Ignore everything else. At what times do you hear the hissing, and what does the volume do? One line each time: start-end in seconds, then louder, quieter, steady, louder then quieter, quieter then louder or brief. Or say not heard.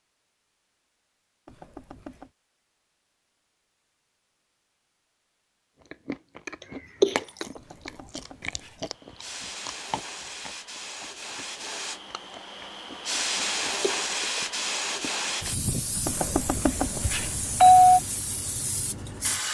8.8-19.4 louder then quieter.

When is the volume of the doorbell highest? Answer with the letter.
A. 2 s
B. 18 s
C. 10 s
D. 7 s
B.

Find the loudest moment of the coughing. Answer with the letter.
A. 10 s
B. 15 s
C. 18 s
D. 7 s
D.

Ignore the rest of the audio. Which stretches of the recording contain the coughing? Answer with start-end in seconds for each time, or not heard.
6.6-7.5, 13.8-14.5.